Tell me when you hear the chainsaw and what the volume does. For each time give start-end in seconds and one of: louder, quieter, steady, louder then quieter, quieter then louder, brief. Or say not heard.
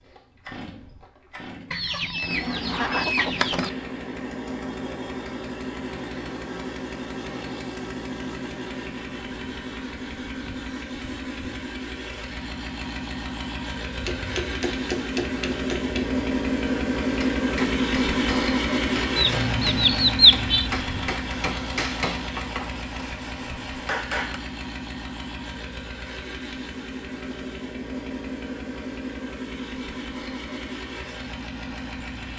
0.0-32.3 louder then quieter.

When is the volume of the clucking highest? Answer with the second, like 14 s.
20 s.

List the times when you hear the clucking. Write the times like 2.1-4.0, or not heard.
1.7-3.7, 19.1-20.7.